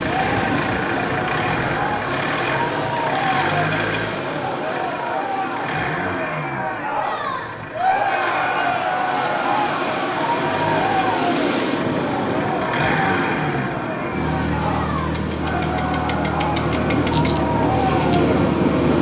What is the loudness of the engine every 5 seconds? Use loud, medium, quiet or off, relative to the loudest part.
loud, medium, loud, loud.